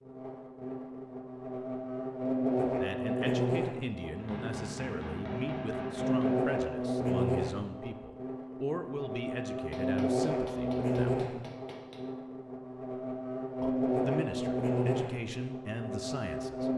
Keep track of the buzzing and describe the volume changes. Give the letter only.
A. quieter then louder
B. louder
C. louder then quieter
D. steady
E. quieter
D.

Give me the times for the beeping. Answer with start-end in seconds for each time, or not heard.
not heard.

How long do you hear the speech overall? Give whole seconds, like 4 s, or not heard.
12 s.